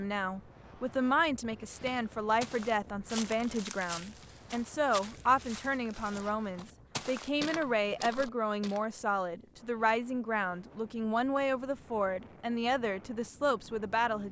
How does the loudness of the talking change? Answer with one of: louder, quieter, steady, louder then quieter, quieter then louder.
steady.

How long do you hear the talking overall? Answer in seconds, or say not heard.
14 s.